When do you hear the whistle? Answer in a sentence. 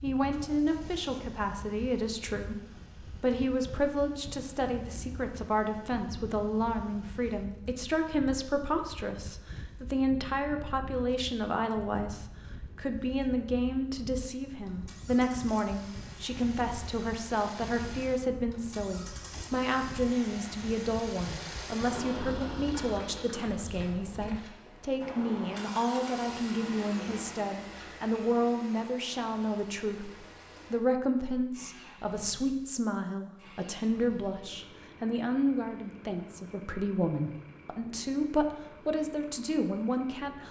The whistle can't be heard in this clip.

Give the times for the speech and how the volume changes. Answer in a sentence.
The speech can be heard from 0.0 to 40.4 s, at a steady volume.